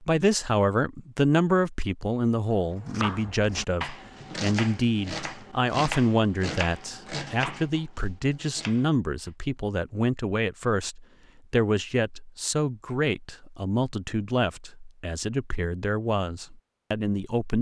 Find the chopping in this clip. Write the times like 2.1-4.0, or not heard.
2.6-9.3.